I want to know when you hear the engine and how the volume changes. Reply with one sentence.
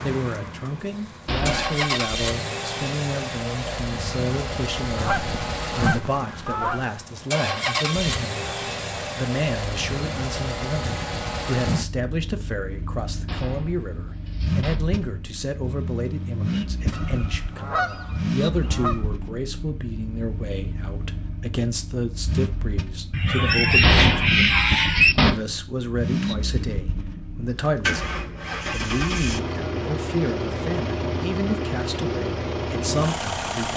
The engine can be heard from 0.0 to 33.7 s, at a steady volume.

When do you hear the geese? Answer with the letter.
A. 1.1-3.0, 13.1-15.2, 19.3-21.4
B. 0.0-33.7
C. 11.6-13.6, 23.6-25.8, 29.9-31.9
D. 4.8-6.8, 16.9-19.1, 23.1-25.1
D.